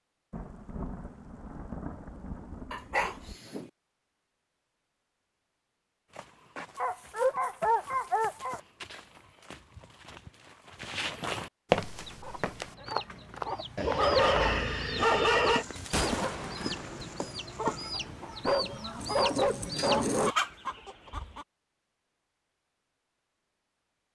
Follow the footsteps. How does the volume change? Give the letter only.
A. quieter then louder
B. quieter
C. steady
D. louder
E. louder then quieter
E.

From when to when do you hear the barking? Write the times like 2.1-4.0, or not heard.
2.7-3.7, 6.8-8.6, 13.8-15.7, 18.4-20.4.